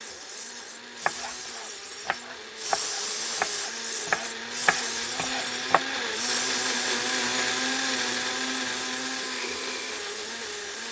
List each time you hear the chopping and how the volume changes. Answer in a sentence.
The chopping can be heard from 1.0 to 6.0 s, getting louder then quieter.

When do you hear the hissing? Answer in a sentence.
You can hear the hissing from 0.0 to 10.8 s.